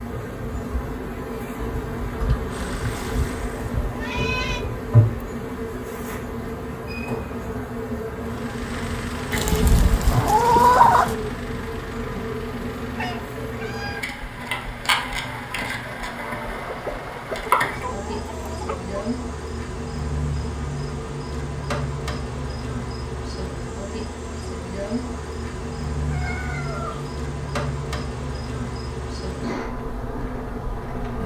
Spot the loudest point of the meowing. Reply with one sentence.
The volume of the meowing peaks at 4 seconds.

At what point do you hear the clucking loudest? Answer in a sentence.
The volume of the clucking peaks at 11 seconds.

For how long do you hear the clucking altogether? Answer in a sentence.
The clucking can be heard for 4 seconds in total.